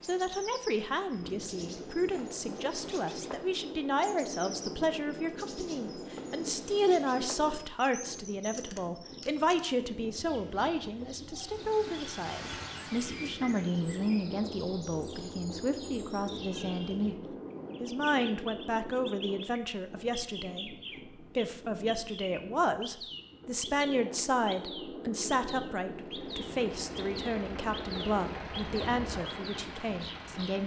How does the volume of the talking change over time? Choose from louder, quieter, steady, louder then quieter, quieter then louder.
steady.